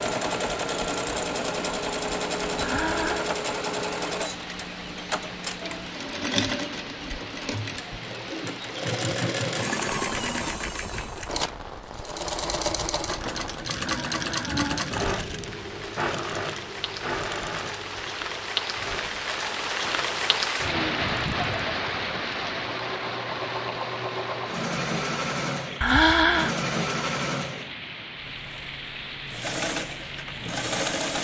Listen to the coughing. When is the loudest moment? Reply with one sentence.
The loudest moment of the coughing is at 26 seconds.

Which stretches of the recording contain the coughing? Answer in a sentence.
You can hear the coughing from 2.6 to 3.3 s, from 13.8 to 15.2 s and from 25.8 to 26.6 s.